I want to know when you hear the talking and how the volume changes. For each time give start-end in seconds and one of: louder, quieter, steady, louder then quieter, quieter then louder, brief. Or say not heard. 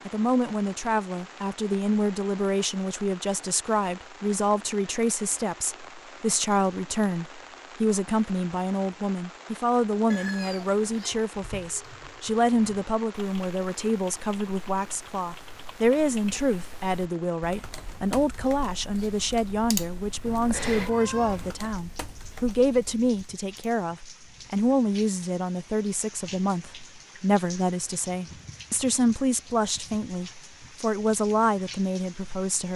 0.1-32.7 steady.